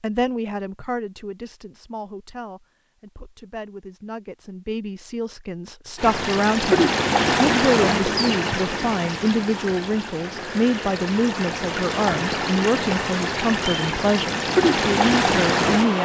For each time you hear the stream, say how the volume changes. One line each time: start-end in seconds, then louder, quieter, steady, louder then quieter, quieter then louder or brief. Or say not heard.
6.0-15.9 quieter then louder.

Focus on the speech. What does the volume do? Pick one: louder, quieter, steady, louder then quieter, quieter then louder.
louder.